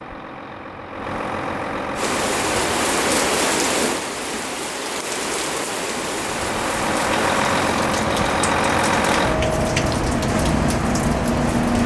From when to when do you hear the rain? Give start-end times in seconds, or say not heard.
1.9-11.8.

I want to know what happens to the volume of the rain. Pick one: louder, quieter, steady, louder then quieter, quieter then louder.
quieter.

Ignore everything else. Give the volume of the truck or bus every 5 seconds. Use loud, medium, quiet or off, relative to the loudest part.
medium, loud, loud.